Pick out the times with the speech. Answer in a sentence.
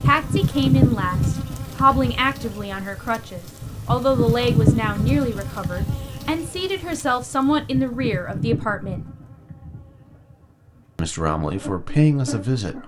The speech can be heard from 0.0 to 9.1 s and from 10.9 to 12.8 s.